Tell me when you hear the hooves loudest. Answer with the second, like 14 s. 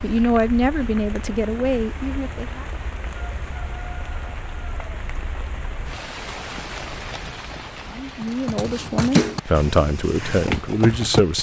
9 s.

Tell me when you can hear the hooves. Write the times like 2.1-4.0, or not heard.
8.2-11.3.